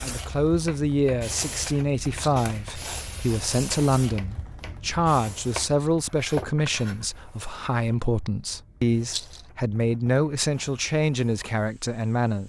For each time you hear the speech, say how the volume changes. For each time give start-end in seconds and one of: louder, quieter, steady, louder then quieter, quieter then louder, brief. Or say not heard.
0.0-12.4 steady.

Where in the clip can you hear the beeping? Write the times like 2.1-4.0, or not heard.
not heard.